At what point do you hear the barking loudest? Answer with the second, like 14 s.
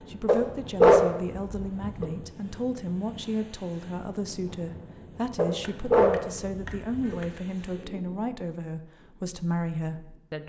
1 s.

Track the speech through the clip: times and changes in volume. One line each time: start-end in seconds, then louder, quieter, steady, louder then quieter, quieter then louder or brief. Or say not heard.
0.0-10.4 steady.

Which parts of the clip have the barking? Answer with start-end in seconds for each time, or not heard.
0.2-2.0, 5.3-7.2.